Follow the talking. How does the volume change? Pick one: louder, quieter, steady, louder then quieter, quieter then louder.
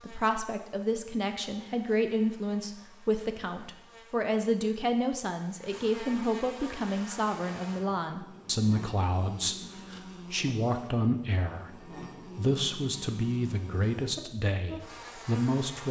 steady.